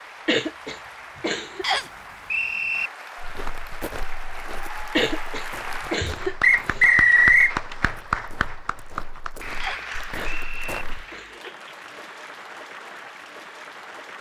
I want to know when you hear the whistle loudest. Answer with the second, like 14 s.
7 s.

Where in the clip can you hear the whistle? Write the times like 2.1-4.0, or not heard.
1.6-2.9, 6.4-7.5, 9.6-10.8.